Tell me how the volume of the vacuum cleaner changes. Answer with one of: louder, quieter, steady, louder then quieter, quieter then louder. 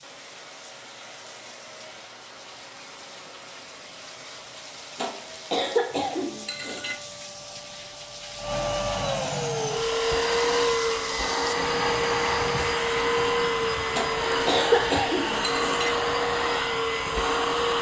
louder.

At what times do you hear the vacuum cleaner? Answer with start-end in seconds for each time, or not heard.
0.0-17.7.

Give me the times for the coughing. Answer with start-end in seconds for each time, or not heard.
5.0-7.0, 13.9-15.9.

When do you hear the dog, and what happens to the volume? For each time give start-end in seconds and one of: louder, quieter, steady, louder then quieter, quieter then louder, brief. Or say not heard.
not heard.